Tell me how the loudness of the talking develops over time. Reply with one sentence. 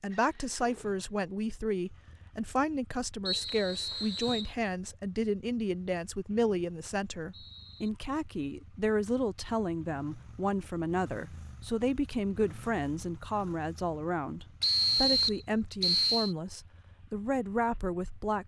The loudness of the talking stays about the same.